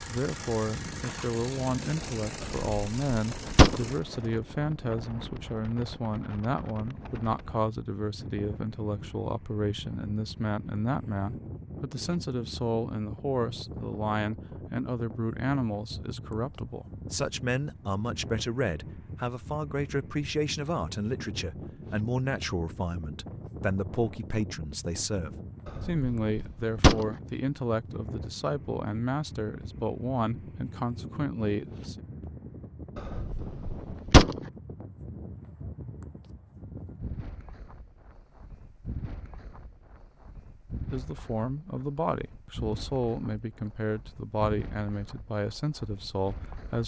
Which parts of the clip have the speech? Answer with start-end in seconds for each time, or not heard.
0.1-32.0, 40.9-46.8.